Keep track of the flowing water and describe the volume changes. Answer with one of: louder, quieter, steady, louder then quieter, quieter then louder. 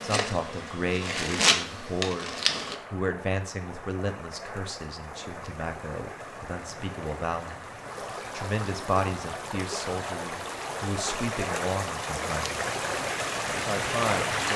louder.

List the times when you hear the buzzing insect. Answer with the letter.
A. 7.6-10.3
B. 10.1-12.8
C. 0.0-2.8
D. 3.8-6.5
C.